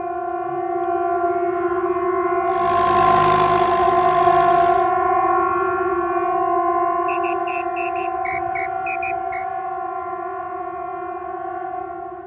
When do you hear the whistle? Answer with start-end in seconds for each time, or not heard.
7.0-9.4.